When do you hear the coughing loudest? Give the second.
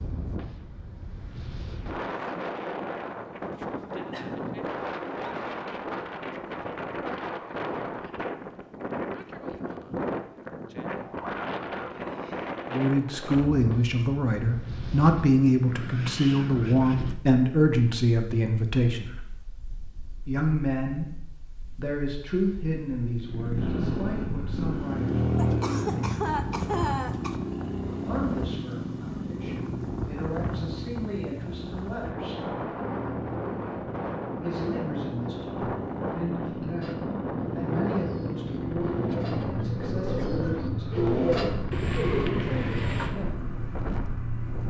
27 s.